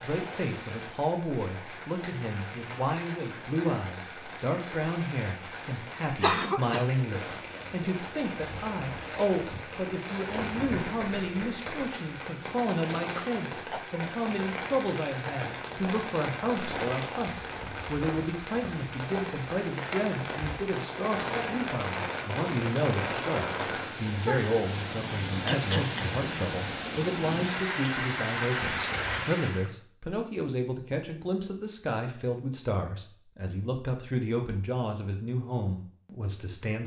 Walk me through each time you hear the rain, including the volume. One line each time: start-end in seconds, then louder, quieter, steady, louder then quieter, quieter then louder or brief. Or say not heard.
0.0-29.7 louder.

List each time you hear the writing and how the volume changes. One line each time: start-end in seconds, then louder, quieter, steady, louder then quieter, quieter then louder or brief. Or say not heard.
not heard.